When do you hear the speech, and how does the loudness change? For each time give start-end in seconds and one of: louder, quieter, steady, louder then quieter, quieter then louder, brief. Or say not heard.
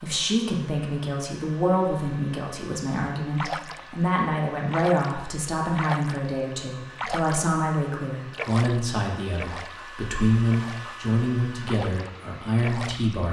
0.0-13.2 steady.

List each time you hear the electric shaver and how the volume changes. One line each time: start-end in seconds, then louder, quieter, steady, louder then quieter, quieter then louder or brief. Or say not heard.
not heard.